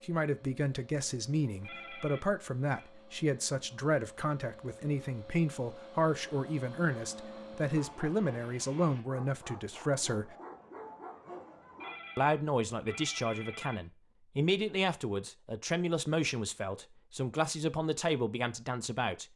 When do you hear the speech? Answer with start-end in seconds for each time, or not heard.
0.0-10.3, 12.2-19.2.